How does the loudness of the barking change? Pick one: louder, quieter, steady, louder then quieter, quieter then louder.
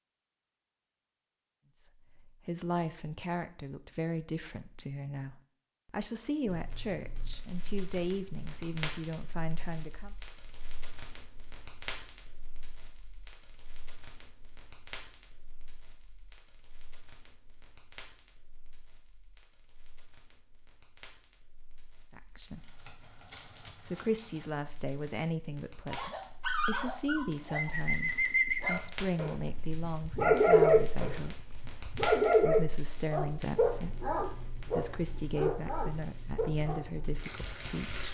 louder then quieter.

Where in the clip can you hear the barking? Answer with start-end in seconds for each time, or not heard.
25.9-37.2.